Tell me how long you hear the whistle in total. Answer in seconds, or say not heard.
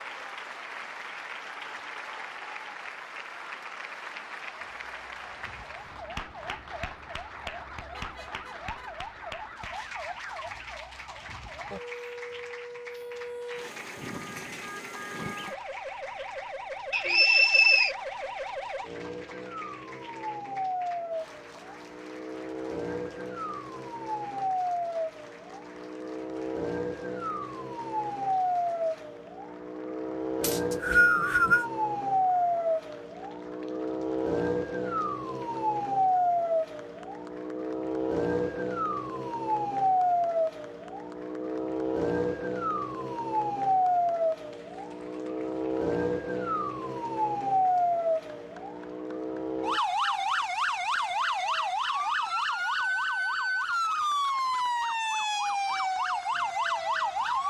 2 s.